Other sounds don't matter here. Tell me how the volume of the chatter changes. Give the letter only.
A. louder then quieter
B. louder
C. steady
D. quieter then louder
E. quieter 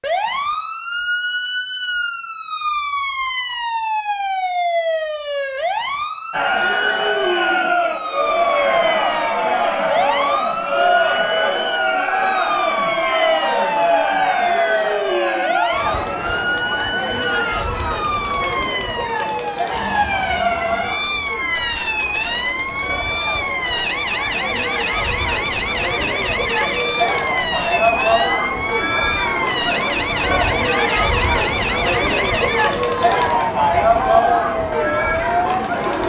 D.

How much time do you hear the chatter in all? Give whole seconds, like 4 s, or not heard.
30 s.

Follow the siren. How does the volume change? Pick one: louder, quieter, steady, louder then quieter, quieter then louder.
steady.